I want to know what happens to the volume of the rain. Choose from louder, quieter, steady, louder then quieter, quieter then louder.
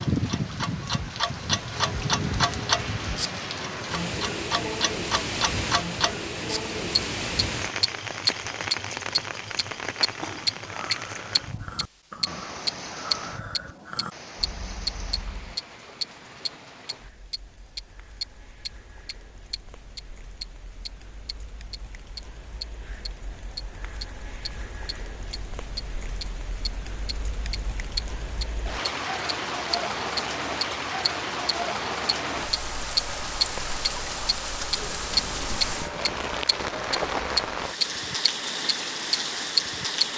quieter then louder.